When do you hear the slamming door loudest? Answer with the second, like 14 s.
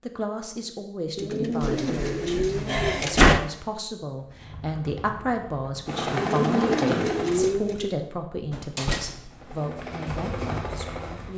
3 s.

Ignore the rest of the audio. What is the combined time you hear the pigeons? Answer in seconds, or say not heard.
4 s.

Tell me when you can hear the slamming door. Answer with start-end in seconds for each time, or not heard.
1.6-3.4, 8.5-9.6.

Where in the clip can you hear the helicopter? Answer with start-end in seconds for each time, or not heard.
4.2-7.5, 9.2-11.3.